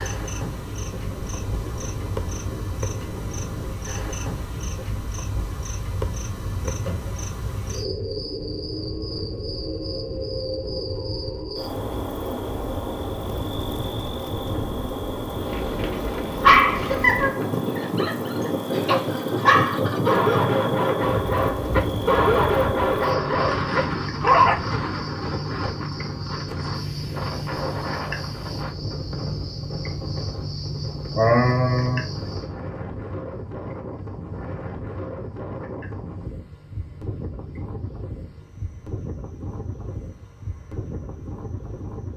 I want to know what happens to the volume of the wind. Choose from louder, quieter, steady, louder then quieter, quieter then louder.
louder then quieter.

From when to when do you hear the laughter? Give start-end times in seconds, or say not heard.
6.7-7.2, 18.6-20.4, 31.1-32.0.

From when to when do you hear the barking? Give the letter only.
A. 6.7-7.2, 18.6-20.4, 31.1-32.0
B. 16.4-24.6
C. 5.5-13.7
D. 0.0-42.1
B.